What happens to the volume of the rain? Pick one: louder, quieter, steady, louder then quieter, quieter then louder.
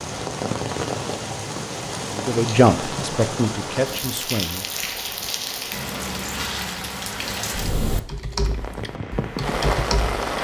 steady.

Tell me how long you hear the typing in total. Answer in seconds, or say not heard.
2 s.